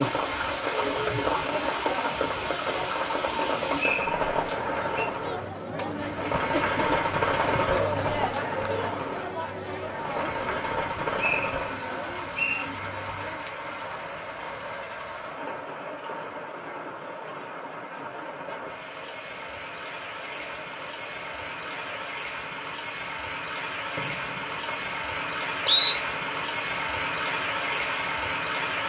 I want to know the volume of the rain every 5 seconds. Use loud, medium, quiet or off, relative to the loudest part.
loud, loud, medium, medium, medium, loud.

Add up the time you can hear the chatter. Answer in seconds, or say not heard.
22 s.